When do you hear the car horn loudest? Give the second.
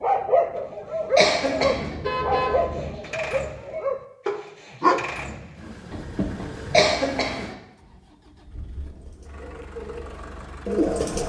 2 s.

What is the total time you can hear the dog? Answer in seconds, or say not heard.
6 s.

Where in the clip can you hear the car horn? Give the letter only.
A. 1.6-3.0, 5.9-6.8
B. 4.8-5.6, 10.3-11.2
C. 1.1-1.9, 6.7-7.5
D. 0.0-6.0
A.